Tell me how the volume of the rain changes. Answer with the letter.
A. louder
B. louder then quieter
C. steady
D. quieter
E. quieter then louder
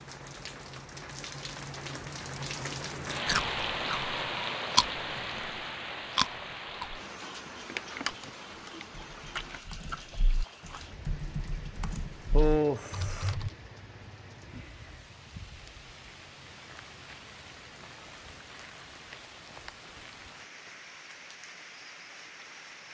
D.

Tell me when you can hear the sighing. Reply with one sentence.
The sighing can be heard from 11.9 to 13.3 s.